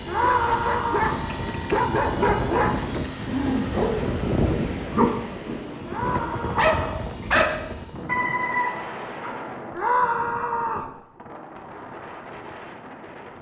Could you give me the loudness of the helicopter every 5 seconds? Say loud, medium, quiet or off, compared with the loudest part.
loud, medium, off.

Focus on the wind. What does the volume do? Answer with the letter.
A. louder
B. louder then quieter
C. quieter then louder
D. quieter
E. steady
D.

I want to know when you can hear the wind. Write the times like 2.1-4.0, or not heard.
0.0-13.3.